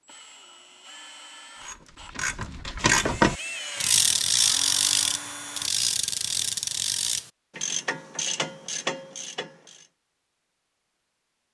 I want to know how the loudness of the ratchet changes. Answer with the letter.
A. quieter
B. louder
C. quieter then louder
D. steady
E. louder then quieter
A.